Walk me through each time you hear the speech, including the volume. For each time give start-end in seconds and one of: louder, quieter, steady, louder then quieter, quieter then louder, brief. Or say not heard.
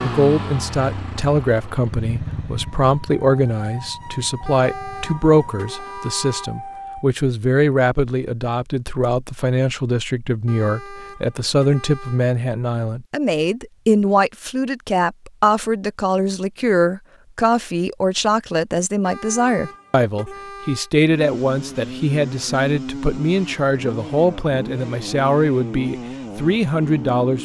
0.0-27.4 steady.